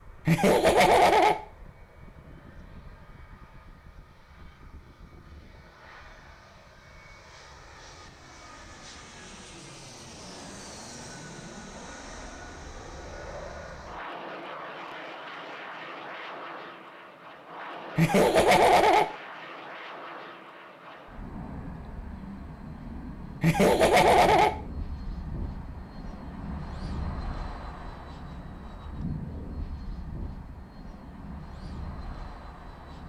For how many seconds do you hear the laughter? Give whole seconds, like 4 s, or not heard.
3 s.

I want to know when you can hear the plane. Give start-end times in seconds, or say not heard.
0.0-33.0.